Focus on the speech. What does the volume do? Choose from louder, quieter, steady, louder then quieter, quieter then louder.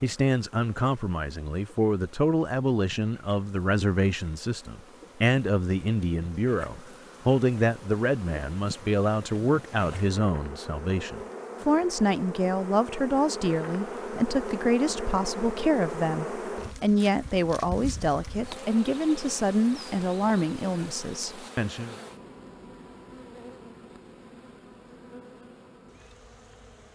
steady.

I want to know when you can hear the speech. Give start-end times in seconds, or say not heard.
0.0-21.9.